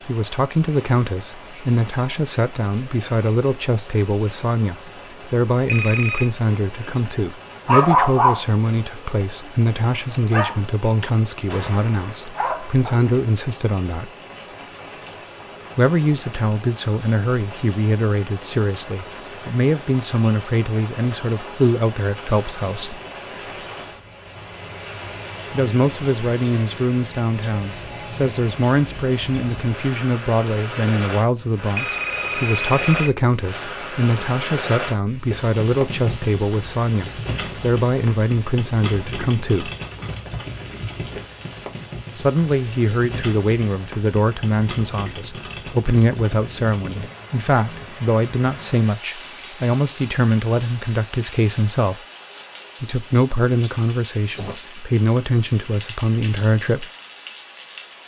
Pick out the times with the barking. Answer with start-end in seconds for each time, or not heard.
7.7-9.1, 10.3-13.0.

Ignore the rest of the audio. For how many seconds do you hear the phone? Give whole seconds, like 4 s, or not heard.
2 s.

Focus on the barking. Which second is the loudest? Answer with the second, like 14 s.
8 s.